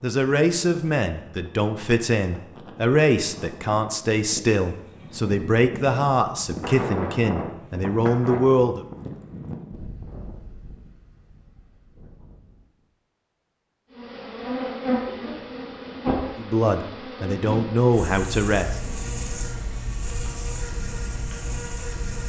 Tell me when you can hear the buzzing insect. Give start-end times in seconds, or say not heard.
13.9-22.2.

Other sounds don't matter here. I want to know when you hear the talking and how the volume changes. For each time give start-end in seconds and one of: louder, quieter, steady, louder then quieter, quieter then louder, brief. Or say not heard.
0.0-8.8 steady
16.4-18.8 brief.